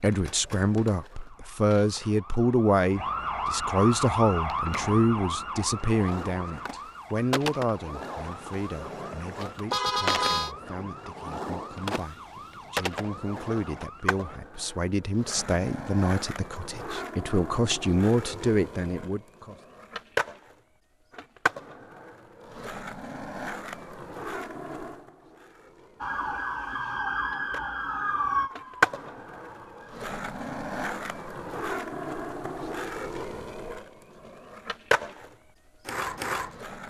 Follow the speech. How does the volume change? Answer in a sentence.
The loudness of the speech goes down, then up.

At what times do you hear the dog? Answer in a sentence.
You can't hear the dog here.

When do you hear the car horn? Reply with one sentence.
You can hear the car horn from 9.7 to 10.6 s.